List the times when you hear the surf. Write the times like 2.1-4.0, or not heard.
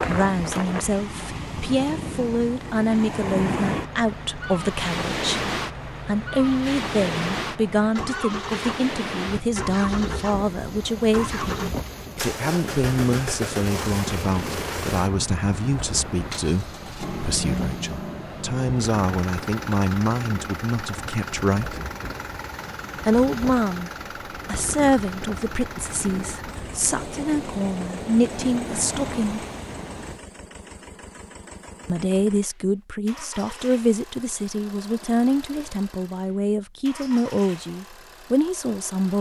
0.0-30.2.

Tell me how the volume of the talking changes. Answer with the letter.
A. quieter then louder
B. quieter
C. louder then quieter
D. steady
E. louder
D.